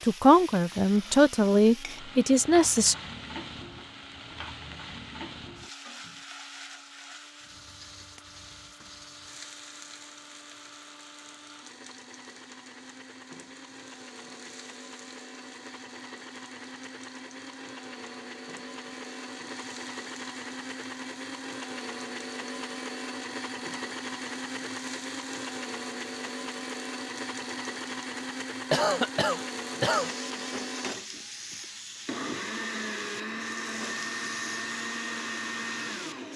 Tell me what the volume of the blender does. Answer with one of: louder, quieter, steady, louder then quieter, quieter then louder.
louder.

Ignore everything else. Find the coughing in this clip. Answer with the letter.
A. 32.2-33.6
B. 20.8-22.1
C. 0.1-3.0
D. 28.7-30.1
D.